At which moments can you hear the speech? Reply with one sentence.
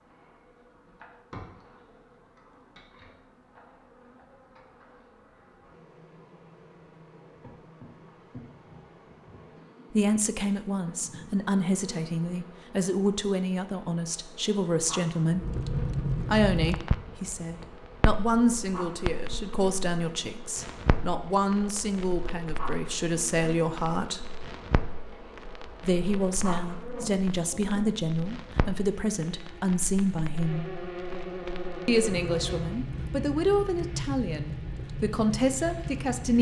You can hear the speech from 9.9 to 15.4 s, from 16.2 to 24.2 s, from 25.8 to 30.6 s and from 31.9 to 36.3 s.